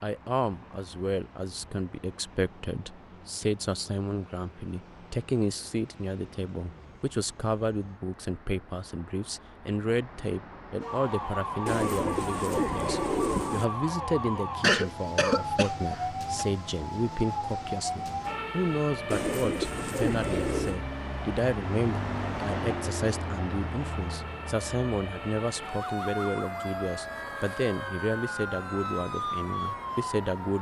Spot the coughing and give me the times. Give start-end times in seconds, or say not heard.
14.6-16.4.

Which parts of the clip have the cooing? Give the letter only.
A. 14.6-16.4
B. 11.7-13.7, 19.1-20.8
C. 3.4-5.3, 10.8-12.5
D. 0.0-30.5
B.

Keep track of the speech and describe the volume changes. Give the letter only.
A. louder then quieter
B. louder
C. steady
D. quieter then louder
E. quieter
C.